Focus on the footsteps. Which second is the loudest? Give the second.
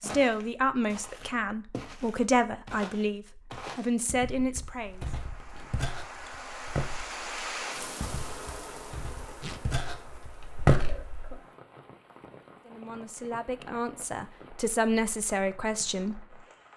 11 s.